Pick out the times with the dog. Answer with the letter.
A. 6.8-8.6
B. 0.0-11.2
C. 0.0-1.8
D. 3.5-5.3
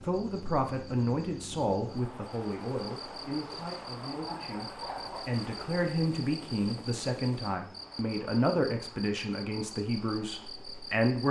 D.